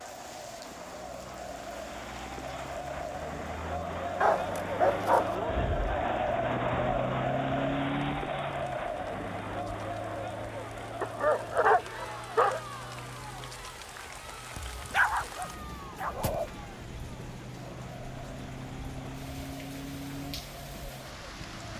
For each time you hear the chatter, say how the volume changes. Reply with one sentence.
You can hear the chatter from 0.0 to 21.7 s, getting louder then quieter.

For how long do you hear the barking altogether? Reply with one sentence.
You can hear the barking for 5 seconds altogether.